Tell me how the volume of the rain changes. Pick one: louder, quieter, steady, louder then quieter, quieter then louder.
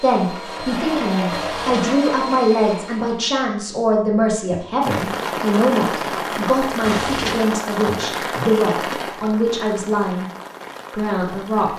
quieter.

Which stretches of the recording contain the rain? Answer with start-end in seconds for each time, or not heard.
4.8-11.7.